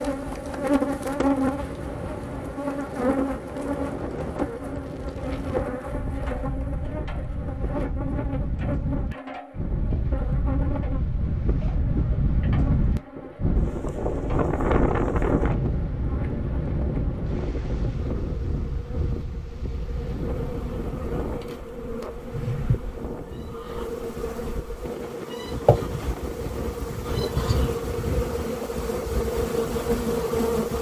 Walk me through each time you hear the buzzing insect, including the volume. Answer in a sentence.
The buzzing insect can be heard from 0.0 to 30.7 s, getting quieter then louder.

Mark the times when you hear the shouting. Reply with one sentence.
You can't hear the shouting here.